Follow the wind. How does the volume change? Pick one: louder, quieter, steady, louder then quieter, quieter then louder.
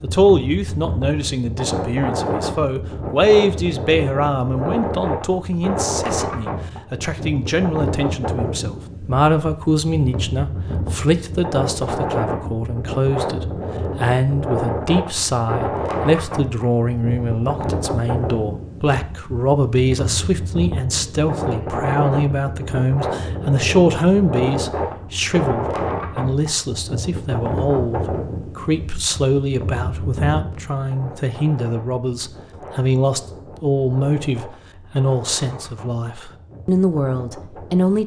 quieter.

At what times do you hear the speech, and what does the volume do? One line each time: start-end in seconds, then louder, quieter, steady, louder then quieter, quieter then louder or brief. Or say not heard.
0.0-38.0 steady.